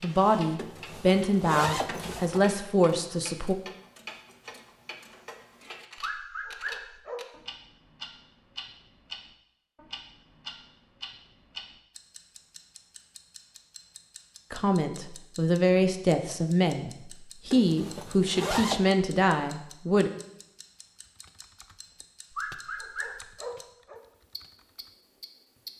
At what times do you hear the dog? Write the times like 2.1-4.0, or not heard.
6.0-7.2, 22.3-24.0.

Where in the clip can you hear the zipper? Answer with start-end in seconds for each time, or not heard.
0.6-2.4, 17.5-18.9.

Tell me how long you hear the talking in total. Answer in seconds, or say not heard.
9 s.